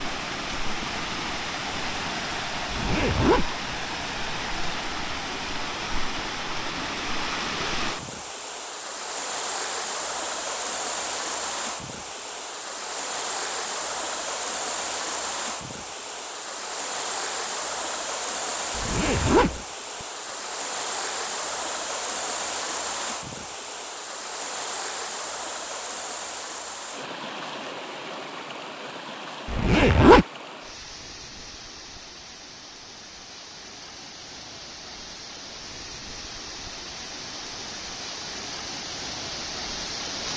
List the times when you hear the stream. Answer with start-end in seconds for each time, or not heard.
0.0-40.3.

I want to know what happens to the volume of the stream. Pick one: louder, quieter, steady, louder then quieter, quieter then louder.
quieter.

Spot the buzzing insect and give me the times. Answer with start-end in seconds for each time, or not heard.
not heard.